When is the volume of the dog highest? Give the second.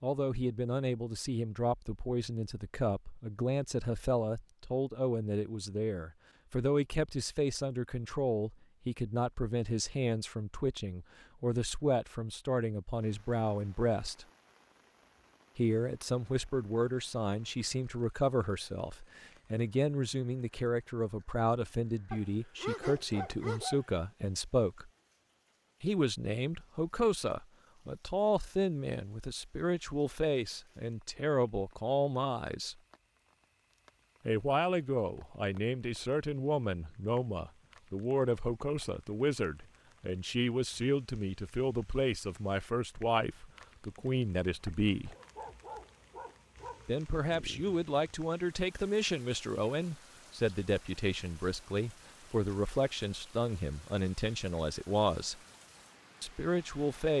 23 s.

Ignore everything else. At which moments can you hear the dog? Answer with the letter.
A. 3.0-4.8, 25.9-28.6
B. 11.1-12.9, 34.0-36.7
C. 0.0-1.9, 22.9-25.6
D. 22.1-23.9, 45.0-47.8
D.